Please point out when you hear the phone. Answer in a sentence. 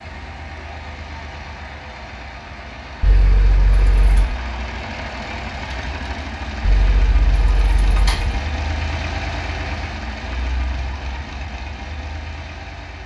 The phone can't be heard in this clip.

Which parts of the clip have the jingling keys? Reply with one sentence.
You can hear the jingling keys from 3.0 to 4.2 s and from 6.6 to 8.4 s.